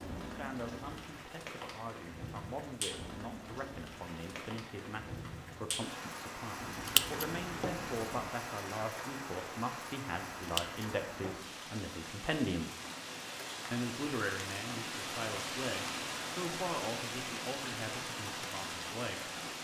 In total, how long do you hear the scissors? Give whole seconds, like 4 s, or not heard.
3 s.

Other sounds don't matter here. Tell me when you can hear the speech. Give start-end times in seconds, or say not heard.
0.2-12.7, 13.7-19.4.